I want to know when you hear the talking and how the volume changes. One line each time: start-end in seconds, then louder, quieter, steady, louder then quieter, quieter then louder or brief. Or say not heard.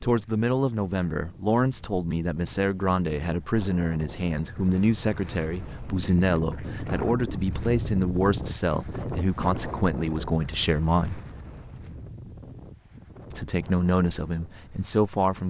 0.0-11.2 steady
13.3-15.4 brief.